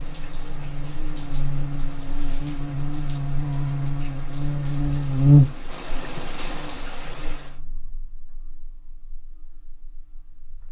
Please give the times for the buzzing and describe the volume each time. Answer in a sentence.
You can hear the buzzing from 0.0 to 10.6 s, getting louder then quieter.